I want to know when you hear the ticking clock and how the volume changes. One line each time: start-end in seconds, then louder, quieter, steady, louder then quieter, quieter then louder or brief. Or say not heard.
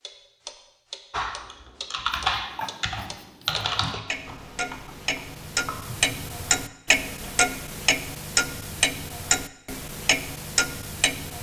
0.0-11.3 louder.